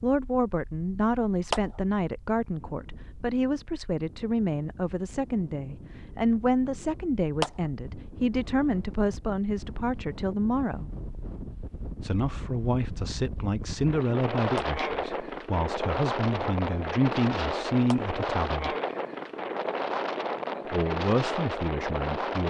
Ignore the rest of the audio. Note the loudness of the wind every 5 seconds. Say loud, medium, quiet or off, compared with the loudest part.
quiet, quiet, medium, loud, loud.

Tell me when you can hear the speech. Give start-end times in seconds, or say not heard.
0.0-10.9, 12.0-18.8, 20.7-22.4.